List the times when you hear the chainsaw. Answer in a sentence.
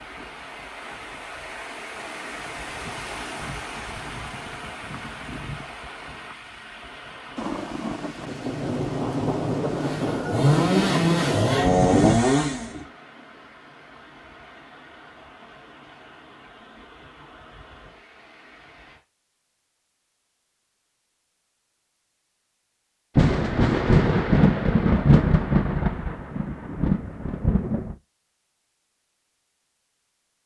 The chainsaw can be heard from 9.7 to 12.8 s.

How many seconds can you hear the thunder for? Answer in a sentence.
You can hear the thunder for 10 seconds altogether.